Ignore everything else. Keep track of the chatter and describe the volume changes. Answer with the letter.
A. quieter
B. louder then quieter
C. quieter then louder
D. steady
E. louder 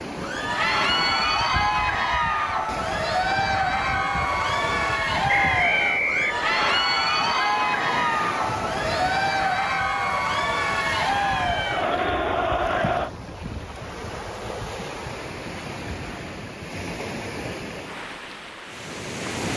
D.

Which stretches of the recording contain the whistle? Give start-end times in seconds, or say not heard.
5.2-6.8.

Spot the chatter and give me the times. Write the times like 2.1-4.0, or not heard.
0.1-13.1.